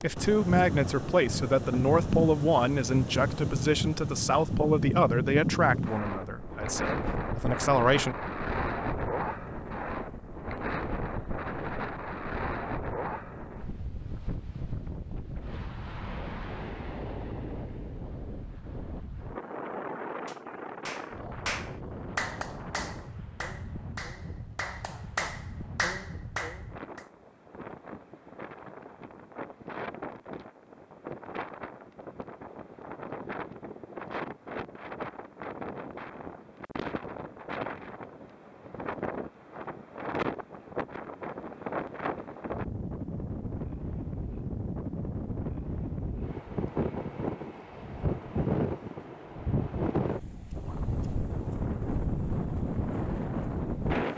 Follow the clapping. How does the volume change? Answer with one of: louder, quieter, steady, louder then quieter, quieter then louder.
quieter then louder.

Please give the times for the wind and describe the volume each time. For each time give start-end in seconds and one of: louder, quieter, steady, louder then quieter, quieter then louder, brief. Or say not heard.
0.0-54.1 quieter then louder.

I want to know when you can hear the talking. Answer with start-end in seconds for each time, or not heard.
0.0-8.2.